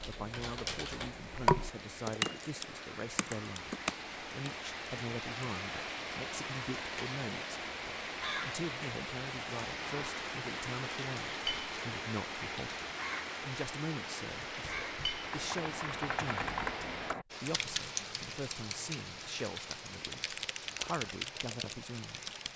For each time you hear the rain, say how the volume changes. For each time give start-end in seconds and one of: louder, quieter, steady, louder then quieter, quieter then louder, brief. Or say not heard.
0.0-22.5 louder then quieter.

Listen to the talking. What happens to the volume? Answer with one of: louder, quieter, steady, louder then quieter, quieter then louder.
steady.